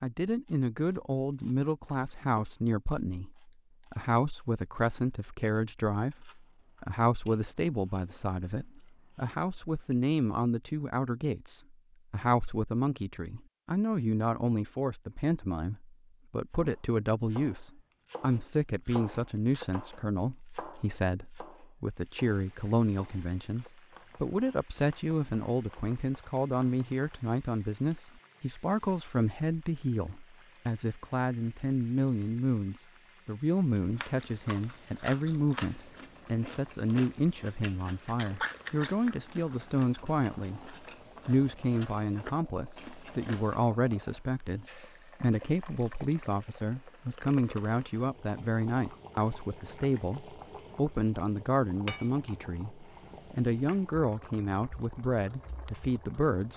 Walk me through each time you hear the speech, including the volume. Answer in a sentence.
The speech can be heard from 0.0 to 56.5 s, at a steady volume.